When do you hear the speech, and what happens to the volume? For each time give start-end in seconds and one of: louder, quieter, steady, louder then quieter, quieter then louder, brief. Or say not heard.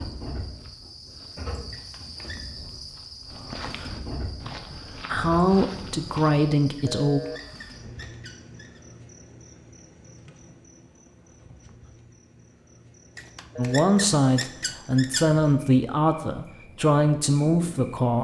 5.1-7.2 brief
13.6-18.1 steady.